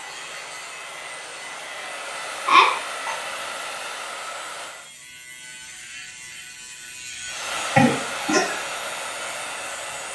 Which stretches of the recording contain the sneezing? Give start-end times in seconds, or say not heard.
2.5-3.1, 7.8-8.6.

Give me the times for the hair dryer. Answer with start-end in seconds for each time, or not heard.
0.0-4.9, 7.2-10.1.